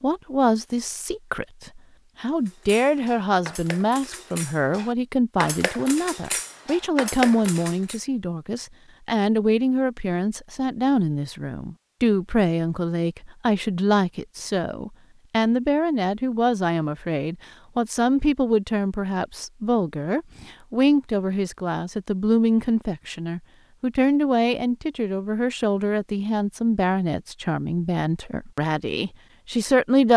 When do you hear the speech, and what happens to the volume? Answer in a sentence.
The speech can be heard from 0.0 to 30.1 s, at a steady volume.